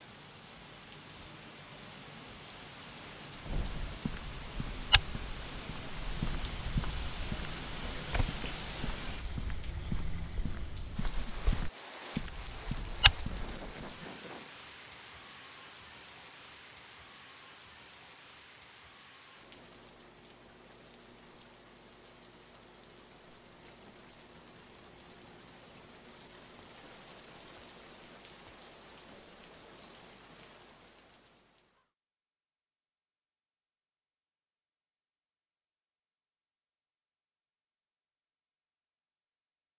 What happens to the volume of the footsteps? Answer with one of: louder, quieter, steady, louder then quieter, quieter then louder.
quieter then louder.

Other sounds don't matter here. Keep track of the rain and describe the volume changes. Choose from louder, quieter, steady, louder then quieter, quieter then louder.
quieter.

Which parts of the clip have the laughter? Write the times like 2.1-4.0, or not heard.
13.2-14.6.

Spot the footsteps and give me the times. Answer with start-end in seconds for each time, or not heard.
3.5-13.9.